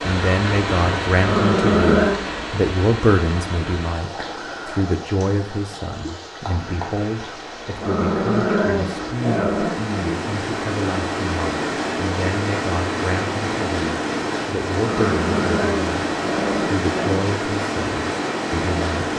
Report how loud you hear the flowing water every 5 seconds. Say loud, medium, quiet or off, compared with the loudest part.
loud, medium, loud, loud.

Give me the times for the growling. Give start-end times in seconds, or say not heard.
1.1-2.2, 7.8-9.9, 14.8-17.2.